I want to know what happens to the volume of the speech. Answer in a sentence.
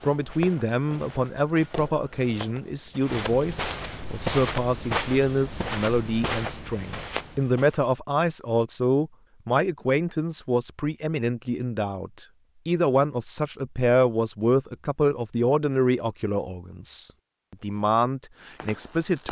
The loudness of the speech stays about the same.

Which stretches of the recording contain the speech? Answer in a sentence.
The speech can be heard from 0.0 to 19.2 s.